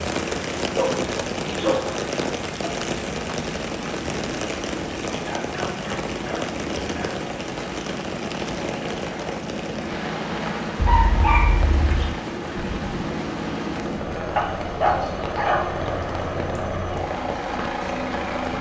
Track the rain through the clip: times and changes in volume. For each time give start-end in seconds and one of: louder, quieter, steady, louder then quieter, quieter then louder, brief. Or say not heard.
0.0-18.5 quieter.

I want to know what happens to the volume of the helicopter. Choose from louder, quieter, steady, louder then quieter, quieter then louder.
louder.